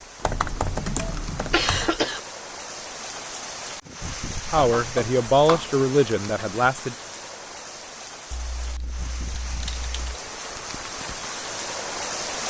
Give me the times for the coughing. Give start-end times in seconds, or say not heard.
0.9-2.2.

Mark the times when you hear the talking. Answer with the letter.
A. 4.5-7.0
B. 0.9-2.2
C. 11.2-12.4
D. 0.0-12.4
A.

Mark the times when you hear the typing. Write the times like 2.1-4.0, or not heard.
0.2-1.9, 4.5-6.0, 8.3-10.2.